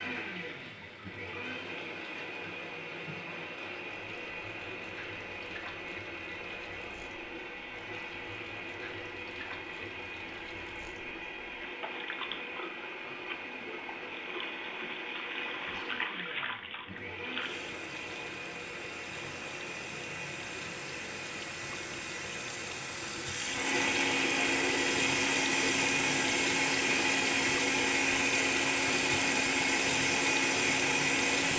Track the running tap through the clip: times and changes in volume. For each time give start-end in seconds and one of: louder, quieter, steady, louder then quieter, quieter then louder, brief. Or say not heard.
0.0-31.5 louder.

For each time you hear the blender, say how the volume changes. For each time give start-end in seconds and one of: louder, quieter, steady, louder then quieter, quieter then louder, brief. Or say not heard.
0.0-31.5 louder.